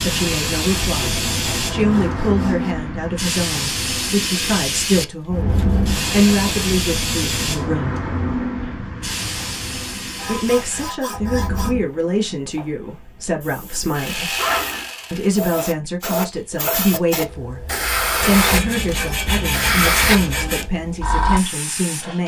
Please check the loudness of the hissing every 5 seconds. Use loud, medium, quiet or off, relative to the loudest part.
loud, loud, medium, loud, loud.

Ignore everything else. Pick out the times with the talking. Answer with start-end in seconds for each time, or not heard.
0.0-8.0, 10.2-14.3, 15.1-22.2.